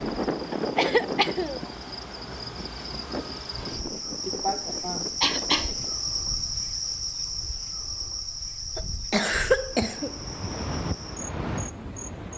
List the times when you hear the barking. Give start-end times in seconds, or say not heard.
not heard.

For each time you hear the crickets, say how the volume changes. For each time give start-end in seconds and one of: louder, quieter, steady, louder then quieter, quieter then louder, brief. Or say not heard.
0.0-12.3 louder then quieter.